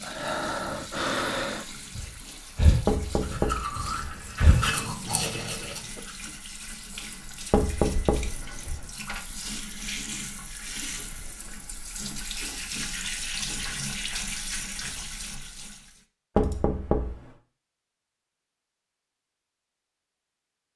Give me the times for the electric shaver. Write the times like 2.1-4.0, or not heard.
not heard.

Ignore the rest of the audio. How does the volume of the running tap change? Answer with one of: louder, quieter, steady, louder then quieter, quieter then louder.
louder.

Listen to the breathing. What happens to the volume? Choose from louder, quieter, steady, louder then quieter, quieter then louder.
quieter.